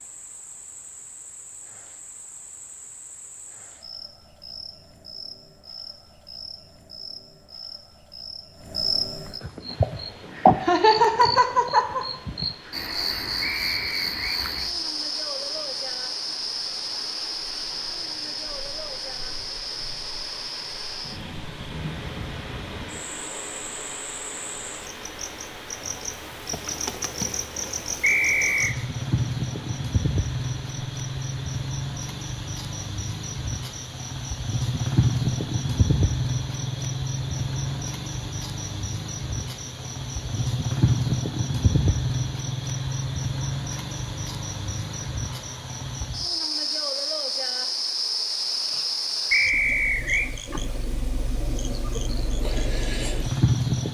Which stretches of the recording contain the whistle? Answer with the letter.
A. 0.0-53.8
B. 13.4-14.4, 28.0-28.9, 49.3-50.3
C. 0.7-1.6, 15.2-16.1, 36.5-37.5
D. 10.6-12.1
B.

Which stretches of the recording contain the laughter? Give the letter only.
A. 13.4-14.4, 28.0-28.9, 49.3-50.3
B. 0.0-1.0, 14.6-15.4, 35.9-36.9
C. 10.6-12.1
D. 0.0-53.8
C.